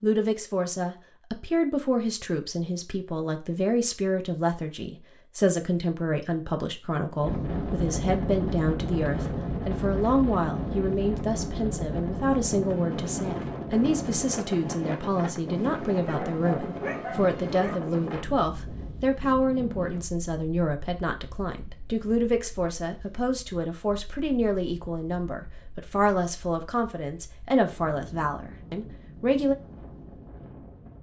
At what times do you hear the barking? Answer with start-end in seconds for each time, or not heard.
16.1-17.8.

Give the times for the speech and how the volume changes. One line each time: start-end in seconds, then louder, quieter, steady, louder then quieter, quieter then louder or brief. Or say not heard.
0.0-29.6 steady.